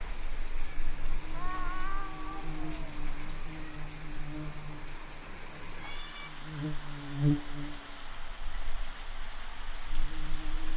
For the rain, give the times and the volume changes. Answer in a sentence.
You can hear the rain from 0.0 to 10.7 s, at a steady volume.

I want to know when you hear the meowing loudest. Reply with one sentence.
The loudest moment of the meowing is at 2 seconds.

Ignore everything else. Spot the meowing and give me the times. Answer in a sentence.
You can hear the meowing from 1.3 to 2.8 s and from 5.7 to 6.3 s.